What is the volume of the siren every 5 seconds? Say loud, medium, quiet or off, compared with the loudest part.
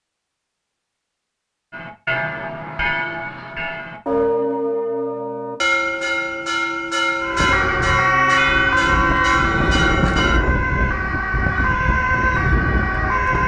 off, loud, loud.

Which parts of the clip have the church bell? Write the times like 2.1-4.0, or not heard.
1.7-10.4.